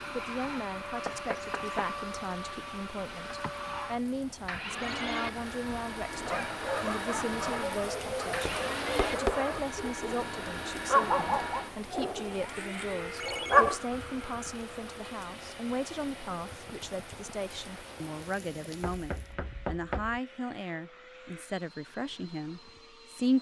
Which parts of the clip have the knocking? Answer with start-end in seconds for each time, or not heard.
1.1-1.9, 8.3-9.4, 18.8-20.2.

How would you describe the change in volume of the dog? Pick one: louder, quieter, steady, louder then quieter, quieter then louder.
louder.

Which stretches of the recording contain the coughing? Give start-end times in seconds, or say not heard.
not heard.